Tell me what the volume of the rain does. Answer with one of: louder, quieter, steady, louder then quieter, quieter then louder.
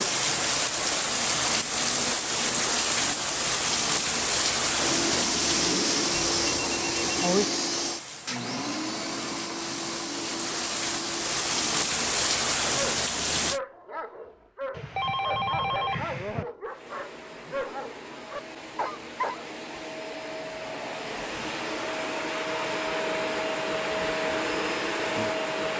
quieter then louder.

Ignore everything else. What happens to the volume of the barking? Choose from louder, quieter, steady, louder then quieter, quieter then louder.
steady.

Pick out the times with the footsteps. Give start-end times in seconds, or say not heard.
not heard.